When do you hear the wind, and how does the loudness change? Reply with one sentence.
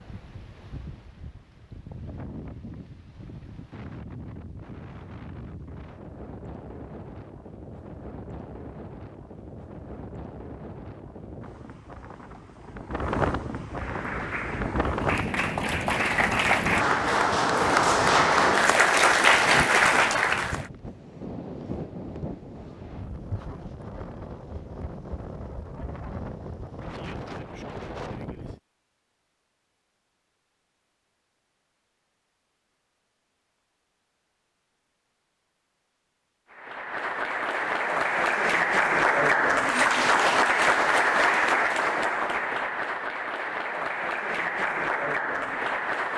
You can hear the wind from 0.0 to 28.6 s, getting louder then quieter.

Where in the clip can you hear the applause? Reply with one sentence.
The applause can be heard from 13.8 to 20.7 s and from 36.5 to 46.1 s.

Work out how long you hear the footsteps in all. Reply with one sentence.
The footsteps can't be heard in this clip.